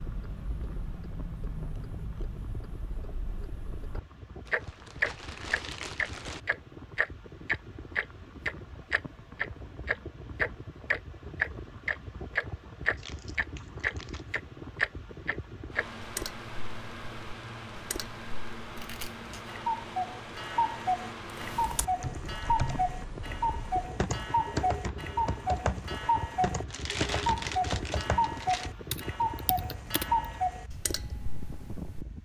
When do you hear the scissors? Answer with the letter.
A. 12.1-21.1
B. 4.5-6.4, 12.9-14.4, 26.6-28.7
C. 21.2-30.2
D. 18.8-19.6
D.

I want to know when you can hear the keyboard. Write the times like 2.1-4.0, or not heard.
21.2-30.2.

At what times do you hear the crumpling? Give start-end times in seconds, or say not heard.
4.5-6.4, 12.9-14.4, 26.6-28.7.